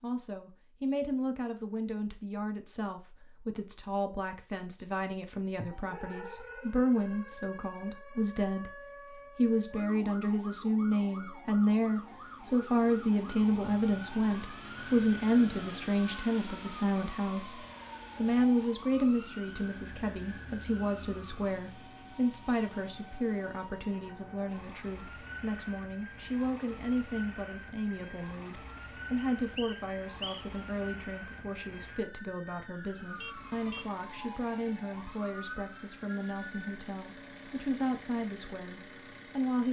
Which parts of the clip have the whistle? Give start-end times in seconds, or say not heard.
29.4-30.6.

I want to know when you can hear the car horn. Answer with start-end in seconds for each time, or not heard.
33.1-34.0.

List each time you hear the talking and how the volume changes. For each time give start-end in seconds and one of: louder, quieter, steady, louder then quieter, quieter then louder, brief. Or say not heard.
0.0-39.6 louder then quieter.